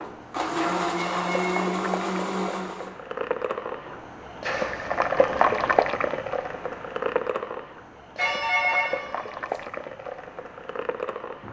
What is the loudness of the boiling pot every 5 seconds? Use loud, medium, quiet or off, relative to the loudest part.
medium, loud, medium.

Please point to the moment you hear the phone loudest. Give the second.
9 s.